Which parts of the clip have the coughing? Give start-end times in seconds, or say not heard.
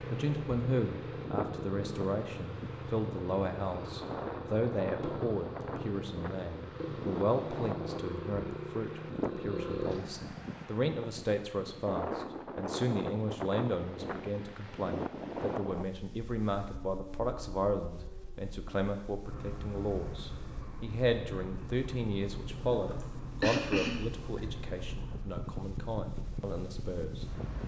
22.7-24.4.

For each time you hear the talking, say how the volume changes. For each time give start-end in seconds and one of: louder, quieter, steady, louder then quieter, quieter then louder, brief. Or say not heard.
0.0-27.2 steady.